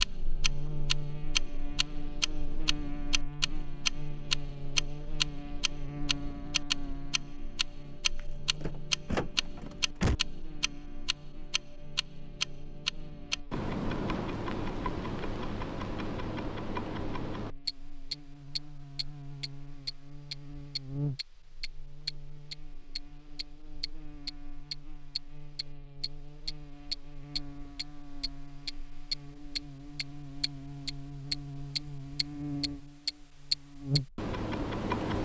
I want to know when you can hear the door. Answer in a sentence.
You can hear the door from 8.2 to 10.2 s.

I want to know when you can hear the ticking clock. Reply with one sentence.
You can hear the ticking clock from 0.0 to 35.1 s.